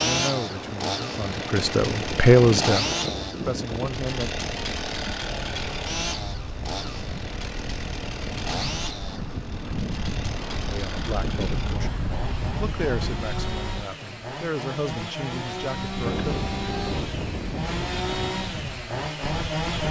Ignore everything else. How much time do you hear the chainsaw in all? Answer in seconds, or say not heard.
20 s.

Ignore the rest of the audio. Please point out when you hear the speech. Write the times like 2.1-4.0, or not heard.
0.0-4.3, 10.7-16.5.